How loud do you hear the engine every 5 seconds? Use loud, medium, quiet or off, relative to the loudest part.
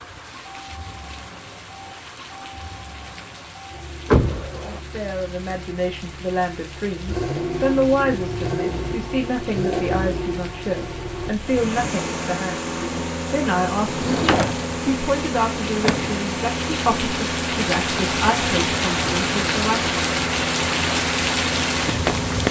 quiet, loud, loud, loud, loud.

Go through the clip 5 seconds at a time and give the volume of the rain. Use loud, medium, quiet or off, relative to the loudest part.
quiet, quiet, quiet, loud, loud.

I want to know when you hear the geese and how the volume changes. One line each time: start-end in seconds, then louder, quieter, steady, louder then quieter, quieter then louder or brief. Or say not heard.
not heard.